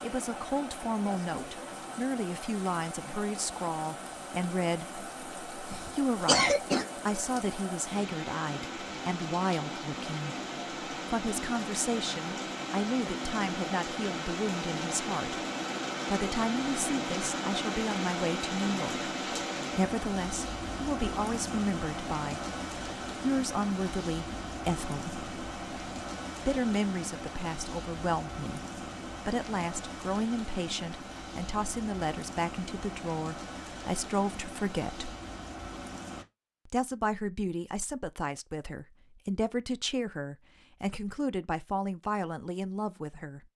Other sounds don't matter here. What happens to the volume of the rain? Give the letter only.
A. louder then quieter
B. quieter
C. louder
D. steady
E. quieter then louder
A.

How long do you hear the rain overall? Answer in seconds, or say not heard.
36 s.